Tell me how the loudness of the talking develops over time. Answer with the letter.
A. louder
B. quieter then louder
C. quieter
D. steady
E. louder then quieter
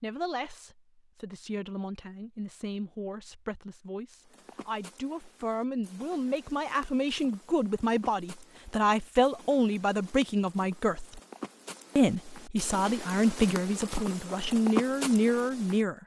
A.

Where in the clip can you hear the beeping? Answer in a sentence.
The beeping can't be heard in this clip.